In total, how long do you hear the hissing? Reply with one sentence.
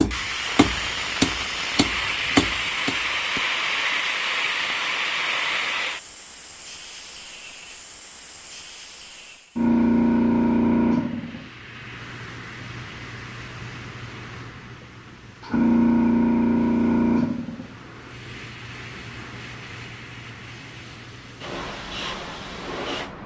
You can hear the hissing for 23 seconds altogether.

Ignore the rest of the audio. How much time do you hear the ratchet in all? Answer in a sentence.
The ratchet can't be heard in this clip.